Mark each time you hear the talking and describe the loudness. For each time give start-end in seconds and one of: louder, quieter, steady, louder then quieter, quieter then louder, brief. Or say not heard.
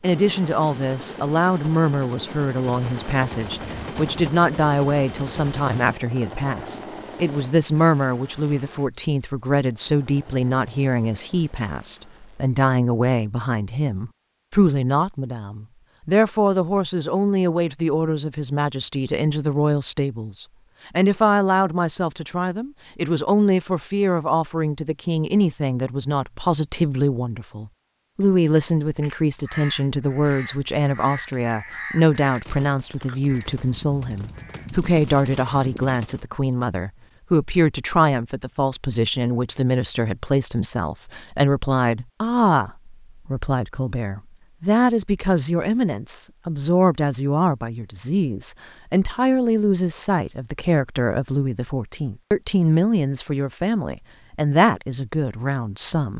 0.0-56.1 steady.